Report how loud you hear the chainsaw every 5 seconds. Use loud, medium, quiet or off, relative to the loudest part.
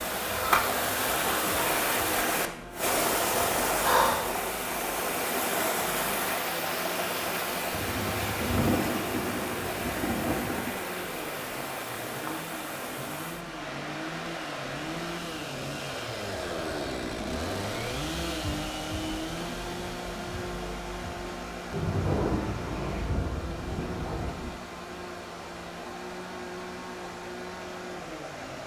medium, medium, medium, loud, medium, medium.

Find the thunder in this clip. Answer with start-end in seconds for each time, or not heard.
7.7-10.8, 21.7-24.6.